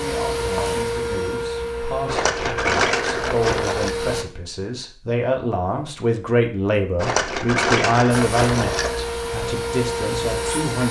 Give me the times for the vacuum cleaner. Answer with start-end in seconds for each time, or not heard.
0.0-4.2, 8.1-10.8.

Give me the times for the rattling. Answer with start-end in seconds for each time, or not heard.
2.0-4.0, 7.0-9.0.